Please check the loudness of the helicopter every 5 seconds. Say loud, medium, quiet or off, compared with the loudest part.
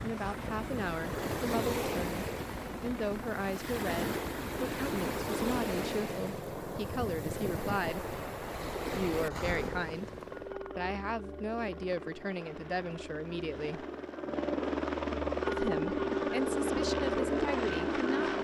quiet, quiet, medium, loud.